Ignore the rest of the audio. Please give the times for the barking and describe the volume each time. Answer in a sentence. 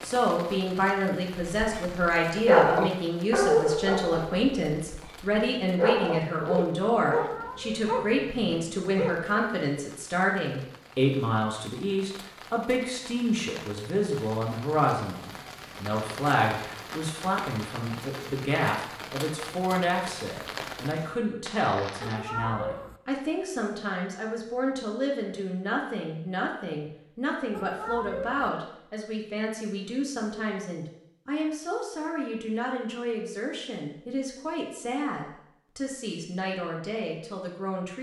You can hear the barking from 1.5 to 9.4 s, getting quieter.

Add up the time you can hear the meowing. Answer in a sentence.
The meowing can be heard for 3 seconds in total.